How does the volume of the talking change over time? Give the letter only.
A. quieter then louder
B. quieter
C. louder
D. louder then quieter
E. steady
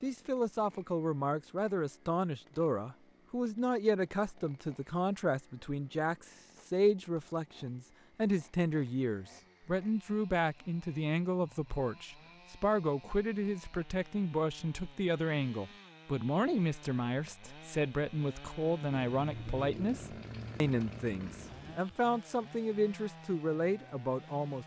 E.